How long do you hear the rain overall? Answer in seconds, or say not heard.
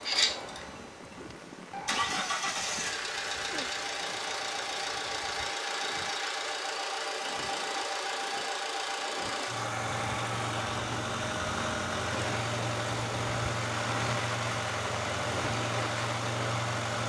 17 s.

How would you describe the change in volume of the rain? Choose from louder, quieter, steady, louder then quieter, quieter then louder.
louder.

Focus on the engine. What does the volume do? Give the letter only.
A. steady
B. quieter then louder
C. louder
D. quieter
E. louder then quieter
A.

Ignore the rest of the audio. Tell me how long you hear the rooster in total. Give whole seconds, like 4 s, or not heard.
3 s.